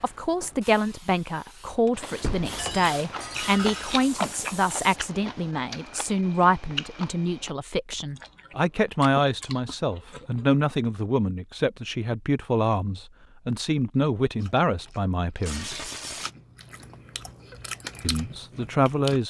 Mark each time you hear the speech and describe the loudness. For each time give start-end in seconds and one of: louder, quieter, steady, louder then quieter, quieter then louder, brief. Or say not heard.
0.0-15.8 steady
18.0-19.2 brief.